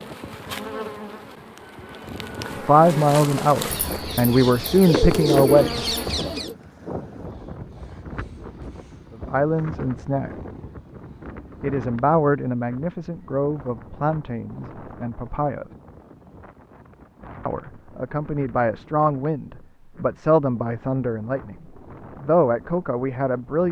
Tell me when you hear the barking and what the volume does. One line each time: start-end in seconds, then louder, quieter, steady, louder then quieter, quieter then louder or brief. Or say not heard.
not heard.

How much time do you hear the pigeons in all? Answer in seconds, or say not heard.
3 s.